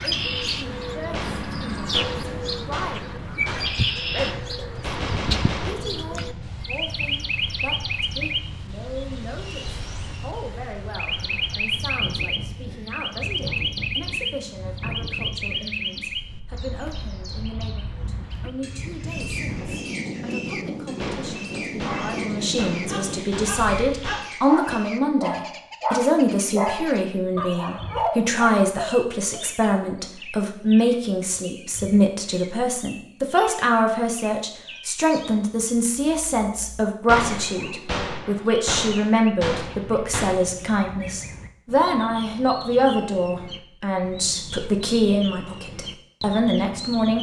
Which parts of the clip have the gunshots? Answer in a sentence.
The gunshots can be heard from 1.1 to 5.8 s, from 20.9 to 24.8 s and from 37.0 to 40.4 s.